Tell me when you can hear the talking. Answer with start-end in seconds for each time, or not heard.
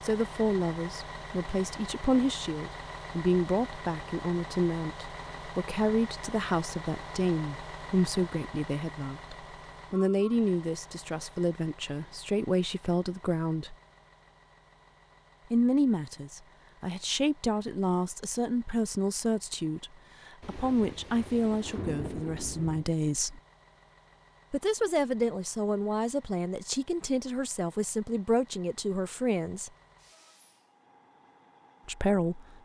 0.0-13.8, 15.5-23.4, 24.5-29.7, 31.9-32.5.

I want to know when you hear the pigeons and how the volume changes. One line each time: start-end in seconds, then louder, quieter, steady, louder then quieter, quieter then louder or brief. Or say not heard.
not heard.